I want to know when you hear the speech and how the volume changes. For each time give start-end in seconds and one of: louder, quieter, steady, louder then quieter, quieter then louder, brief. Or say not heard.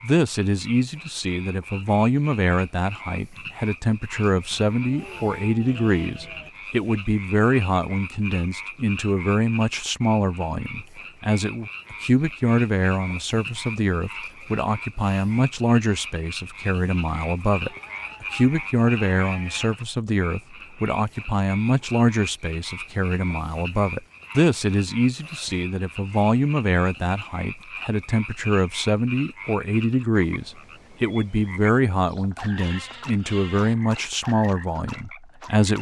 0.0-35.7 steady.